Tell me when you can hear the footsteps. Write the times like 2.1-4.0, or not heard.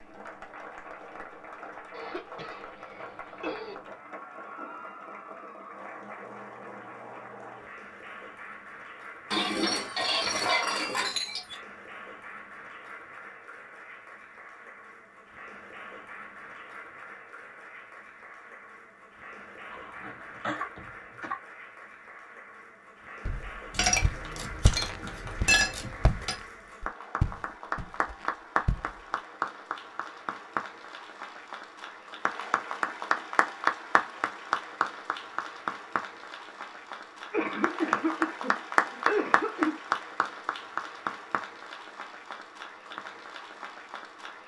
23.2-28.9.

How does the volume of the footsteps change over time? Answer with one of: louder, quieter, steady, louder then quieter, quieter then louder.
louder then quieter.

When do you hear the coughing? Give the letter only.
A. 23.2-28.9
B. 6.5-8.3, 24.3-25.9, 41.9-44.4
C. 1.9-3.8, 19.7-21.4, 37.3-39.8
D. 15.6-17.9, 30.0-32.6
C.